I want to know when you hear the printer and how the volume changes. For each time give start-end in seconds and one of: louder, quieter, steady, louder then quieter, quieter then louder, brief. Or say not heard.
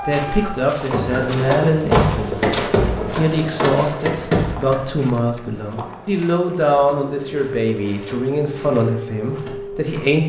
0.0-10.2 quieter.